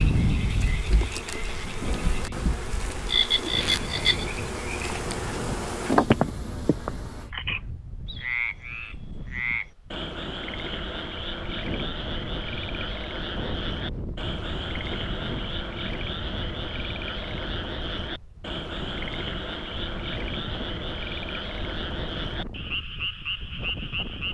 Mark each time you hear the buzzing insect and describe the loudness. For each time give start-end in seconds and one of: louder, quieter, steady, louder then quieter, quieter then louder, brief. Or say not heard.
0.0-7.3 louder.